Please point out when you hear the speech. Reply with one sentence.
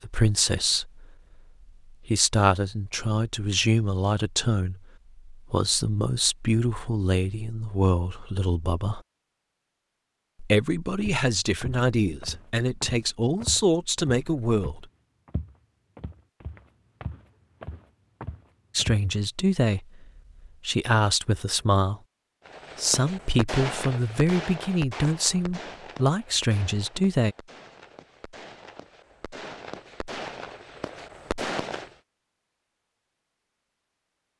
You can hear the speech from 0.0 to 1.1 s, from 1.9 to 9.0 s, from 10.4 to 14.8 s, from 18.8 to 22.0 s and from 22.8 to 27.4 s.